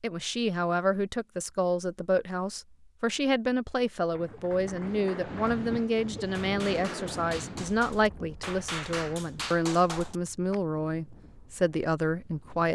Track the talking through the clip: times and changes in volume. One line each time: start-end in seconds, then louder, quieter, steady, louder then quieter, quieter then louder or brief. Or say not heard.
0.0-12.7 steady.